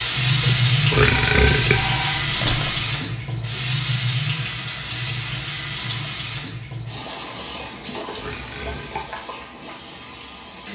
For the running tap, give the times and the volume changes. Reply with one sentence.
The running tap can be heard from 0.0 to 10.6 s, getting quieter.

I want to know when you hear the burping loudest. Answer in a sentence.
The loudest moment of the burping is at 1 second.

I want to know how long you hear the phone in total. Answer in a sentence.
You can hear the phone for 2 seconds altogether.